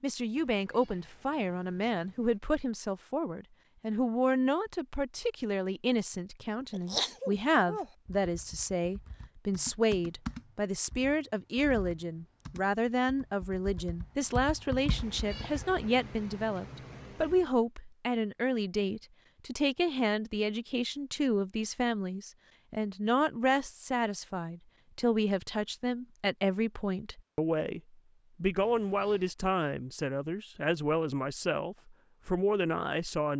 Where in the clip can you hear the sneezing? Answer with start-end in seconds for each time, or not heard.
6.7-7.9.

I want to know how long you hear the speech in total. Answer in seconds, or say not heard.
33 s.